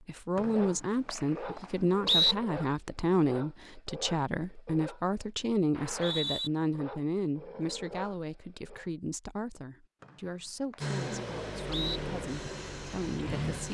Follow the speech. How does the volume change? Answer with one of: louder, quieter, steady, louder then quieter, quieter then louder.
quieter.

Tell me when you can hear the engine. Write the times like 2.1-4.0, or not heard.
10.8-13.6.